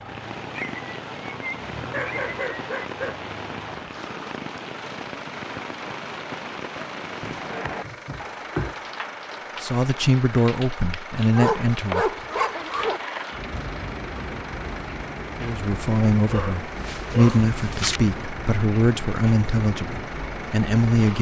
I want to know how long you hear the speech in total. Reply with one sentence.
You can hear the speech for 8 seconds altogether.